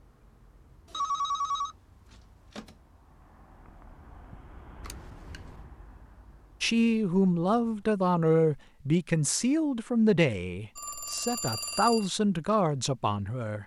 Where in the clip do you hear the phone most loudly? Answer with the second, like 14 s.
1 s.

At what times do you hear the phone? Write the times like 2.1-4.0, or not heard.
0.9-2.8, 4.8-5.6, 10.8-12.1.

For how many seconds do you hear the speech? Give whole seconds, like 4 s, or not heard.
7 s.